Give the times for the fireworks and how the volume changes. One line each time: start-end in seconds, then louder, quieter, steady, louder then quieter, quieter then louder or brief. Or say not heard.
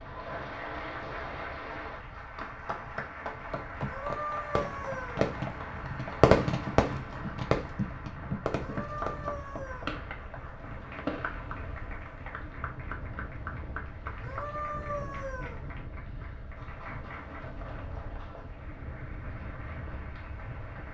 4.0-12.4 louder then quieter.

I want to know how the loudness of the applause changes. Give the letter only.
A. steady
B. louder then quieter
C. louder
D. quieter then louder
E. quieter
E.